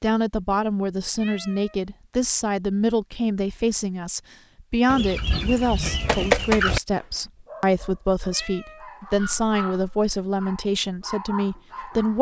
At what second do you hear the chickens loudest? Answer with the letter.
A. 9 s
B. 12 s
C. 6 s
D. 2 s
C.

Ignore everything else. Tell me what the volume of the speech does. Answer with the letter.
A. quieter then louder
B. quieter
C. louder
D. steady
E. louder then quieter
D.